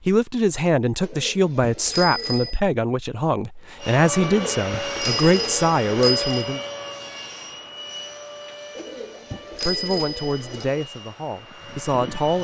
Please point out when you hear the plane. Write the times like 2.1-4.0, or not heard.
3.8-12.3.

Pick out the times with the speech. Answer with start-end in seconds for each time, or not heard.
0.1-6.6, 9.7-12.3.